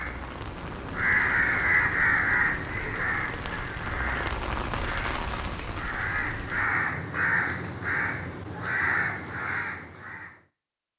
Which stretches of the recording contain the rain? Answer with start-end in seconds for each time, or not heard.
0.0-6.7.